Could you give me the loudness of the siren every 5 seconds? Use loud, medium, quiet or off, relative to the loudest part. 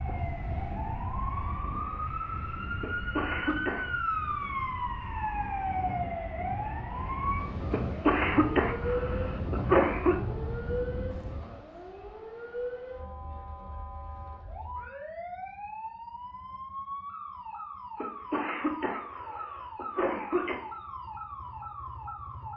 loud, loud, medium, medium, medium.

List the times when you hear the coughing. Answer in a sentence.
You can hear the coughing from 2.8 to 4.0 s, from 7.7 to 10.2 s and from 18.0 to 20.6 s.